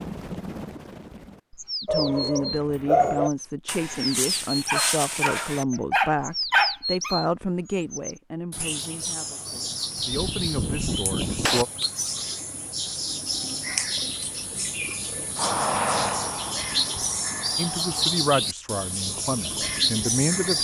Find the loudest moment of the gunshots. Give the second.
11 s.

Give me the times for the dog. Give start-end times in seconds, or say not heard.
1.9-7.2.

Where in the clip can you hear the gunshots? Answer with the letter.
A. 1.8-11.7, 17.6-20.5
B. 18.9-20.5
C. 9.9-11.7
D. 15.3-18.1
C.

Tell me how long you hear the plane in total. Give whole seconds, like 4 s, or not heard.
3 s.